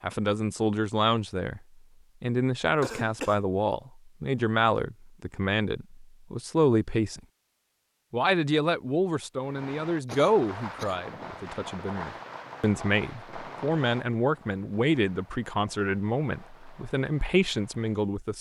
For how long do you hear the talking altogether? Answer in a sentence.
You can hear the talking for 17 seconds altogether.